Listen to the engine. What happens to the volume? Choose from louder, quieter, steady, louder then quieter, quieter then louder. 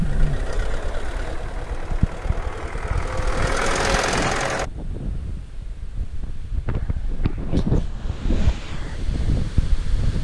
louder.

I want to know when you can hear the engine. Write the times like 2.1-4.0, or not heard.
0.0-4.7.